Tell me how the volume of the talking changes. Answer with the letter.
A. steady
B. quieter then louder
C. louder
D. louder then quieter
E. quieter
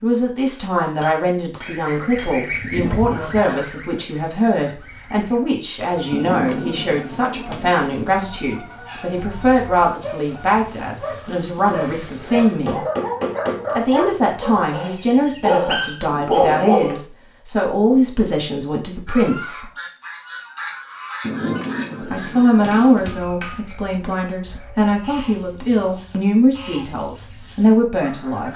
A.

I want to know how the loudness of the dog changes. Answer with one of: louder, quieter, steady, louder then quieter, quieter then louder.
louder.